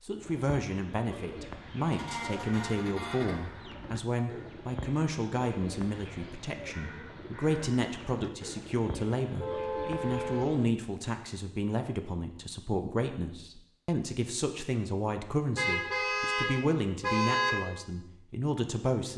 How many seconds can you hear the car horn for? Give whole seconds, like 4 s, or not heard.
5 s.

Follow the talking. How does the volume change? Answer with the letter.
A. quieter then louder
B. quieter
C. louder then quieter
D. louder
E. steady
E.